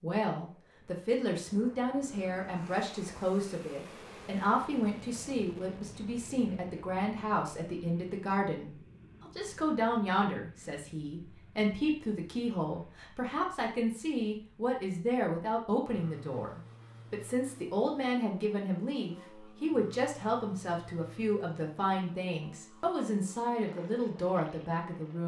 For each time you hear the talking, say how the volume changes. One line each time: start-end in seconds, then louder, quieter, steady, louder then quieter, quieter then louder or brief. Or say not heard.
0.0-25.2 steady.